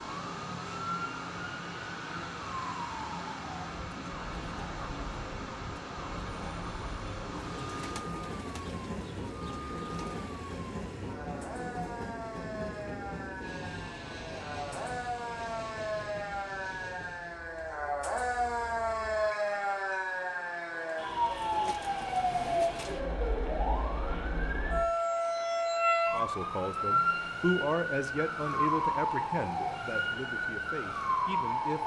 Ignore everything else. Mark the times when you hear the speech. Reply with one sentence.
You can hear the speech from 26.1 to 31.8 s.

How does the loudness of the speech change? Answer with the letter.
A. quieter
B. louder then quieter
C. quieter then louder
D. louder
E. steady
A.